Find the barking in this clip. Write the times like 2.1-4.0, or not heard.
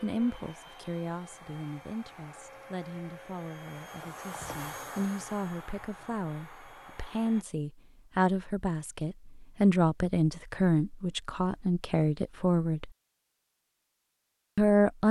not heard.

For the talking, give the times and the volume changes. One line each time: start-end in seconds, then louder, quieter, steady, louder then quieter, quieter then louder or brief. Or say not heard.
0.0-12.8 louder
14.6-15.0 brief.